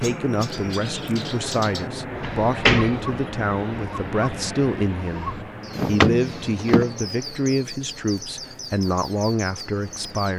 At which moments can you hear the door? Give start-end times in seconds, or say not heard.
2.2-3.1, 5.8-6.9.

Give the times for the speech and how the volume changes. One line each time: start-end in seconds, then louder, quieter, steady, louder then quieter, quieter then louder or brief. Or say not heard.
0.0-10.3 steady.